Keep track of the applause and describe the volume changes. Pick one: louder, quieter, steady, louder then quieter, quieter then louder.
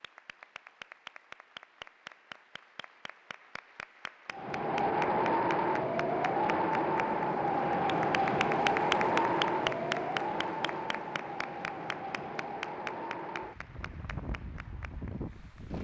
louder then quieter.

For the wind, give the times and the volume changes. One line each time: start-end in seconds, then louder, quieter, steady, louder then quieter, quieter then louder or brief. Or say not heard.
4.3-15.7 quieter.